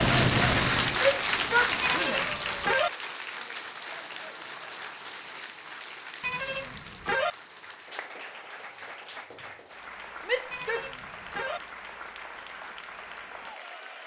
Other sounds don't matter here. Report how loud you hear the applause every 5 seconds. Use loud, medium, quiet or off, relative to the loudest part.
loud, quiet, quiet.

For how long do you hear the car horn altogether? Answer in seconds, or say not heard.
3 s.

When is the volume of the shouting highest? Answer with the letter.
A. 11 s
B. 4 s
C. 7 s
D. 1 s
D.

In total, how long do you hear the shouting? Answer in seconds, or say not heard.
2 s.